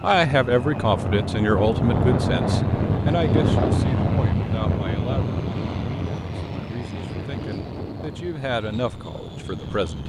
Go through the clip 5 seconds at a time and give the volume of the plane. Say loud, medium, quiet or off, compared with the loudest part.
loud, medium.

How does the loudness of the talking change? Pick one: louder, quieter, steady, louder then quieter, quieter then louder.
quieter then louder.